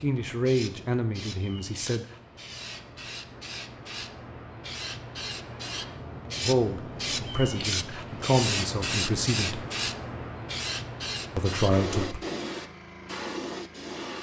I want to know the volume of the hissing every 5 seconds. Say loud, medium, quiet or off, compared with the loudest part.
medium, loud, loud.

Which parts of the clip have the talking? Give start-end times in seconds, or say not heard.
0.0-2.0, 6.4-9.6, 11.3-12.2.